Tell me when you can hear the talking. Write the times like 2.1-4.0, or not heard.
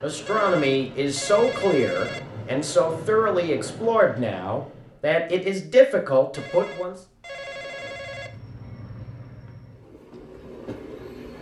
0.0-7.0.